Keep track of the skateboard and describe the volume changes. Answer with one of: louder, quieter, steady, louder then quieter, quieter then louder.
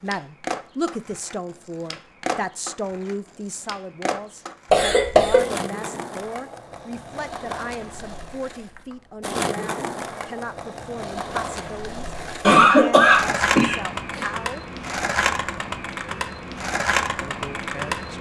louder.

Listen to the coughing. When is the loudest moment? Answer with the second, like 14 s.
13 s.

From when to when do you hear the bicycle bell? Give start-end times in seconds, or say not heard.
not heard.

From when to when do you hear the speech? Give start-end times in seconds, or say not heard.
0.0-14.7, 17.2-18.1.